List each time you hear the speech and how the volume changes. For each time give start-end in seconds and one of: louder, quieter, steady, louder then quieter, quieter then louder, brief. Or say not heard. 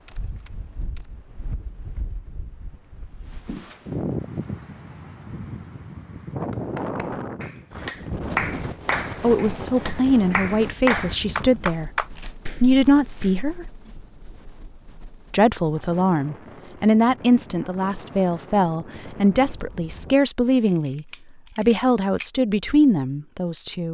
9.2-13.7 quieter then louder
15.3-23.8 steady.